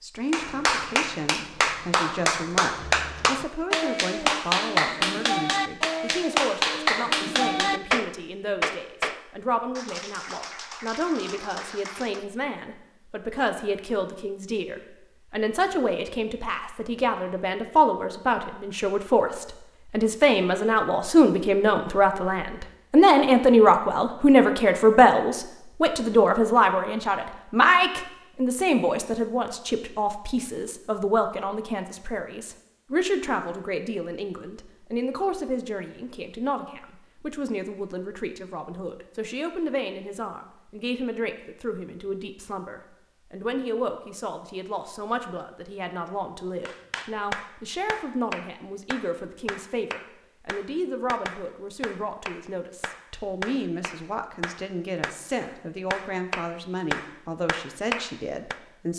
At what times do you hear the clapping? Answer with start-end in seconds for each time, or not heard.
0.3-12.2, 46.6-58.6.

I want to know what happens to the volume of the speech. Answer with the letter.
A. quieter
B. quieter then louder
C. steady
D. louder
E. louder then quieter
E.